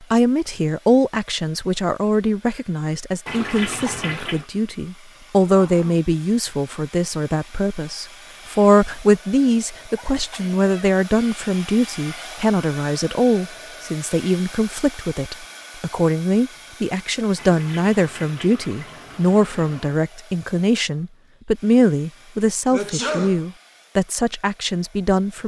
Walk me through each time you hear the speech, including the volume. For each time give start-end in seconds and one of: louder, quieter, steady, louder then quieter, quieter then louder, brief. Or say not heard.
0.1-25.4 steady.